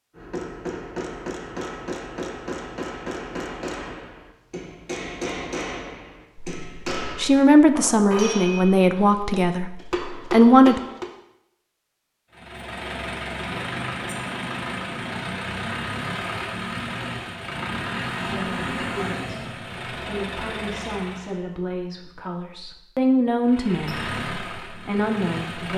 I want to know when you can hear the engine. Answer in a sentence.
You can hear the engine from 12.3 to 21.4 s and from 23.4 to 25.7 s.